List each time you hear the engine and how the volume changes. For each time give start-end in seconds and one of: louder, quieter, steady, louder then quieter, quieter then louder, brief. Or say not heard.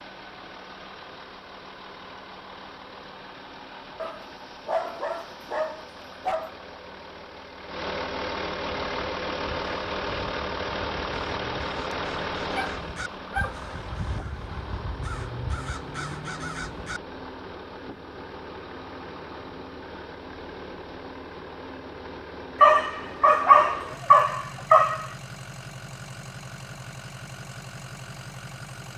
0.0-28.9 louder then quieter.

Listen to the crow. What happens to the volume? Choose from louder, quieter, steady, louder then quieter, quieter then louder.
louder.